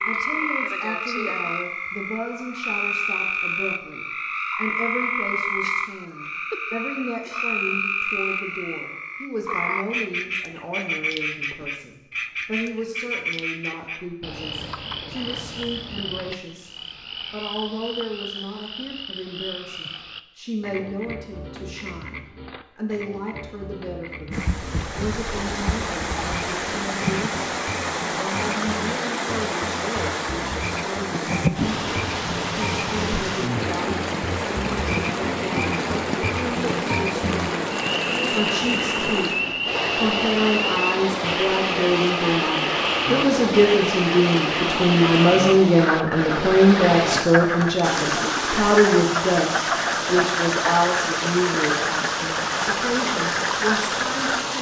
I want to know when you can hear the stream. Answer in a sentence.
You can hear the stream from 24.3 to 54.5 s.